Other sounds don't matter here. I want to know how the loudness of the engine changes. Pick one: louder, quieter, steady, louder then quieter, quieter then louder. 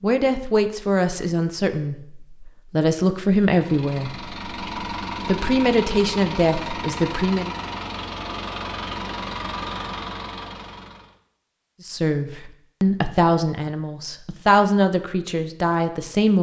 steady.